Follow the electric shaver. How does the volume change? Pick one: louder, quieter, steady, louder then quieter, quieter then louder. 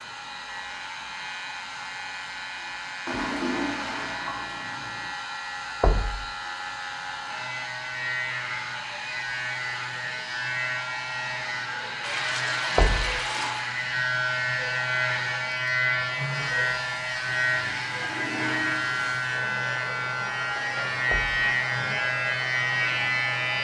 louder.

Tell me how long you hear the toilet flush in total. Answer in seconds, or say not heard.
6 s.